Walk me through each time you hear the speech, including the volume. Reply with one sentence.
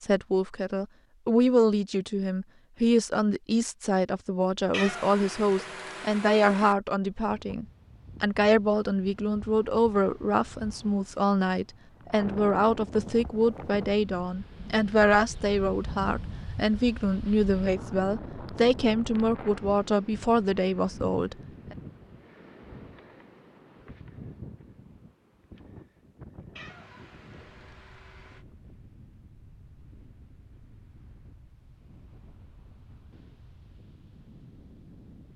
The speech can be heard from 0.0 to 21.8 s, at a steady volume.